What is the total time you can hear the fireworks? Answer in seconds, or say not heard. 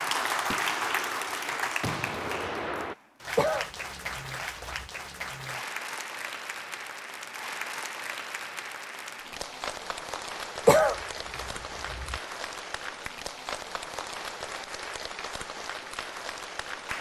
3 s.